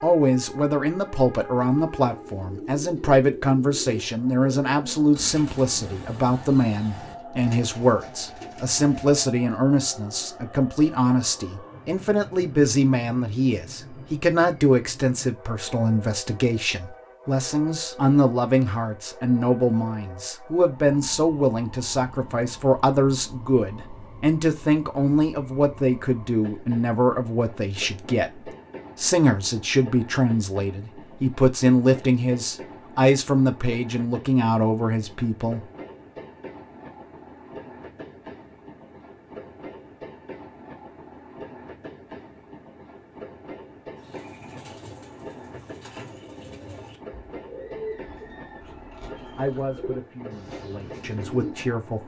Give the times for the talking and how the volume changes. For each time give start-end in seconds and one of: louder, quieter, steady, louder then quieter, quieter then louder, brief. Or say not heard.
0.0-35.6 steady
49.4-52.0 brief.